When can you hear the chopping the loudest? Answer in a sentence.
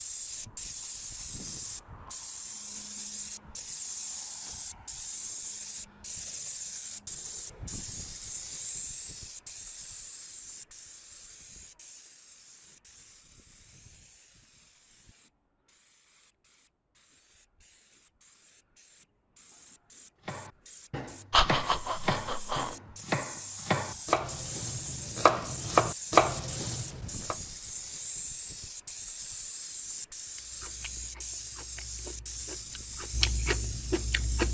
The loudest moment of the chopping is at 26 seconds.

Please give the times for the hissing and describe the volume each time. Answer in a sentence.
You can hear the hissing from 0.0 to 34.4 s, getting quieter then louder.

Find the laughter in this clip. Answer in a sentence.
You can hear the laughter from 21.3 to 22.8 s.